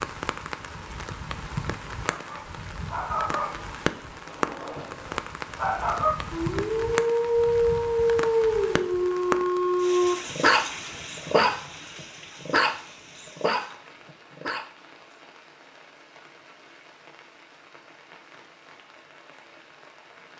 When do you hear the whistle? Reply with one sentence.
You can't hear the whistle here.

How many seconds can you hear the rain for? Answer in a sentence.
The rain can be heard for 20 seconds in total.